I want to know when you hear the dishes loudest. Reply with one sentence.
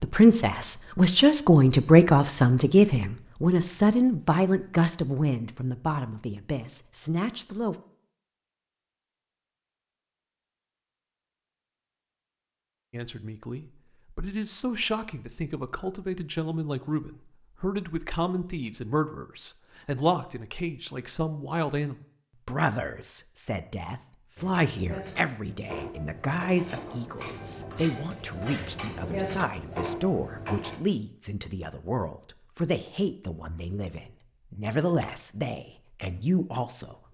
The loudest moment of the dishes is at 29 seconds.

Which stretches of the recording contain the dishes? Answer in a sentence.
The dishes can be heard from 24.4 to 30.8 s.